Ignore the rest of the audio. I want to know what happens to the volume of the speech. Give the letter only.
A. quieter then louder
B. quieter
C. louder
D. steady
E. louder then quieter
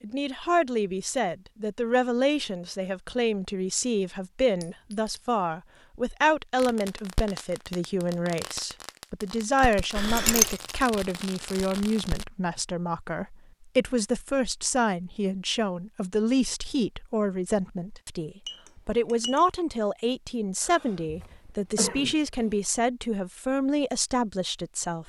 D.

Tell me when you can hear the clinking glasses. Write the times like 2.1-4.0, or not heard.
4.6-5.3, 10.2-10.8, 18.4-19.4.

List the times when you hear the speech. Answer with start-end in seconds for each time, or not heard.
0.0-25.0.